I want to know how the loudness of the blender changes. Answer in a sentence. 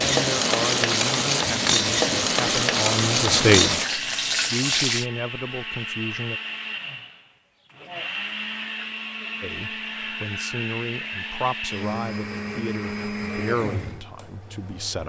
The loudness of the blender stays about the same.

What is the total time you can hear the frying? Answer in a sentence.
You can hear the frying for 5 seconds altogether.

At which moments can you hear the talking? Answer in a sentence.
You can hear the talking from 0.0 to 6.4 s and from 9.4 to 15.0 s.